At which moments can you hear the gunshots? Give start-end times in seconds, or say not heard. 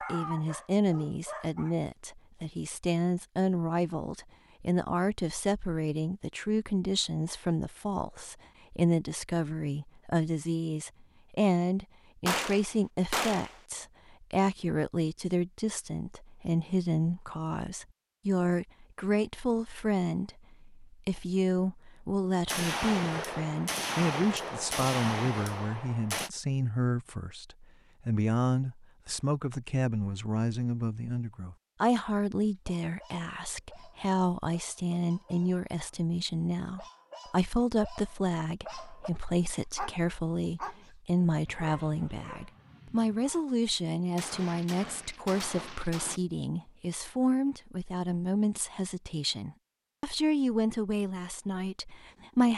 12.2-13.6, 22.4-26.3, 44.1-46.2.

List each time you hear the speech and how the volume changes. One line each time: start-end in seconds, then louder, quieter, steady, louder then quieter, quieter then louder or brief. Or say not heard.
0.1-52.5 steady.